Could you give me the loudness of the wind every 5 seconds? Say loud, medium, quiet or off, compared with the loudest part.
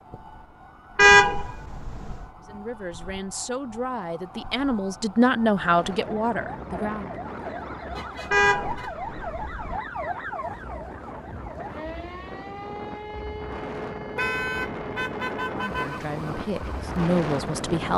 off, medium, medium, loud.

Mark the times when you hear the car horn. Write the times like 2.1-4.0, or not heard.
0.9-2.2, 8.3-9.8, 14.2-16.0.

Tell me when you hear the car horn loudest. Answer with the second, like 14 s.
1 s.